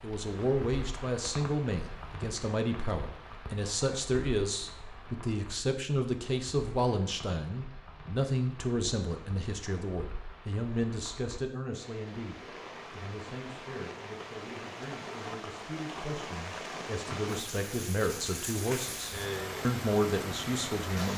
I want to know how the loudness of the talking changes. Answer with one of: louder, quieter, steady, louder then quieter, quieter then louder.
quieter then louder.